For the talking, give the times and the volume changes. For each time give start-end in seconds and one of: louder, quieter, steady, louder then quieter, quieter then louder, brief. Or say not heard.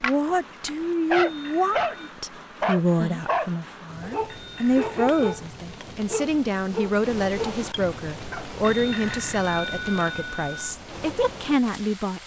0.0-12.2 steady.